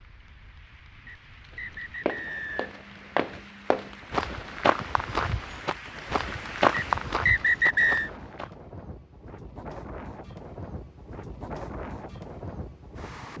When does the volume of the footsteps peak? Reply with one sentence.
The volume of the footsteps peaks at 7 seconds.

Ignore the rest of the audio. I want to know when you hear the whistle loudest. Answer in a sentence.
The loudest moment of the whistle is at 8 seconds.